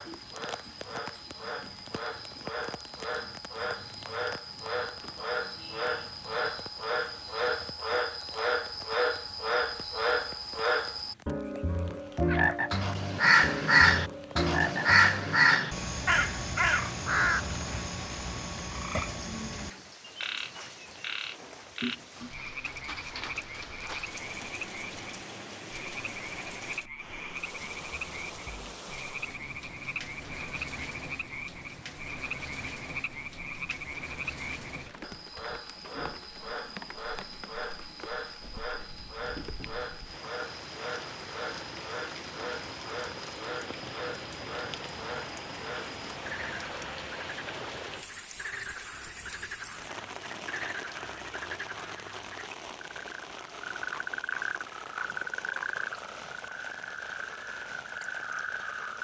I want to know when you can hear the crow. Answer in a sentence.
The crow can be heard from 12.2 to 17.9 s.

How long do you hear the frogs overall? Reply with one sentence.
You can hear the frogs for 59 seconds altogether.